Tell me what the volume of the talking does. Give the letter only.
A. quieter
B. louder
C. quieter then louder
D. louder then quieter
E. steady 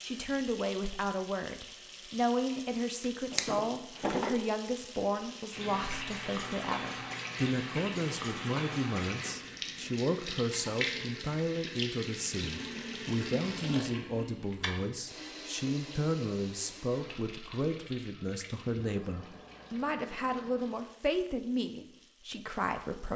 E.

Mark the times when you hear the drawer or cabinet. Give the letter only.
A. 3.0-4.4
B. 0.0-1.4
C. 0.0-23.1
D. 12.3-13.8
A.